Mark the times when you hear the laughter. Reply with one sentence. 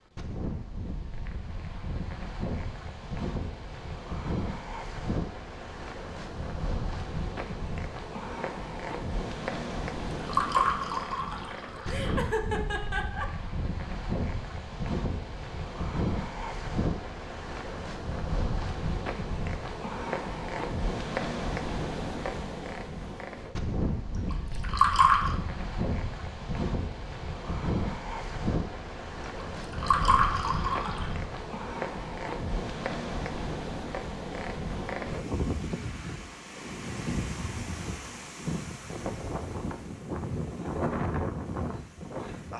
You can hear the laughter from 11.8 to 13.2 s.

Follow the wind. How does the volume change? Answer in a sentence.
The volume of the wind stays about the same.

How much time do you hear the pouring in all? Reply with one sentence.
You can hear the pouring for 5 seconds altogether.